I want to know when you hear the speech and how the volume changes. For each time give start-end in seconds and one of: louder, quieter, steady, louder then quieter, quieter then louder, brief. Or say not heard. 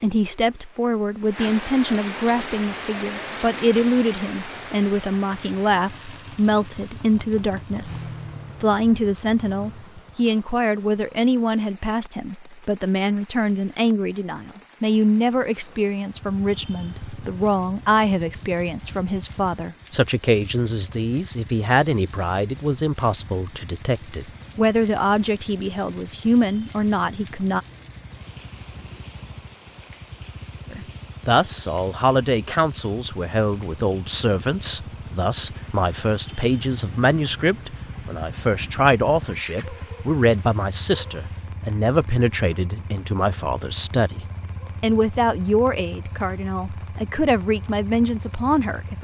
0.0-27.6 steady
30.7-44.2 steady
44.8-48.9 quieter then louder.